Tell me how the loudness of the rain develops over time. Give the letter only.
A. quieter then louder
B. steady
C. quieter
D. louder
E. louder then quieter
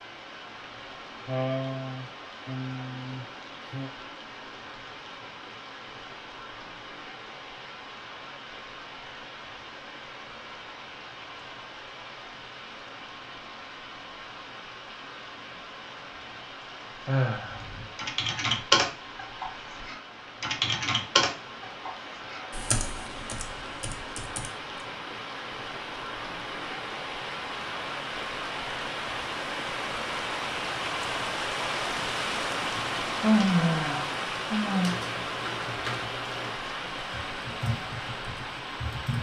D.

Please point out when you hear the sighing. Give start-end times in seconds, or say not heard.
1.2-3.9, 17.1-17.6, 32.8-35.0.